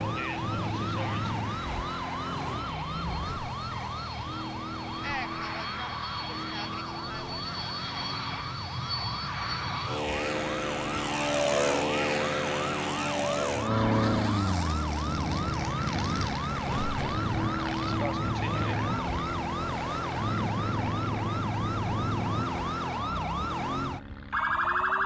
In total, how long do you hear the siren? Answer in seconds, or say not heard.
25 s.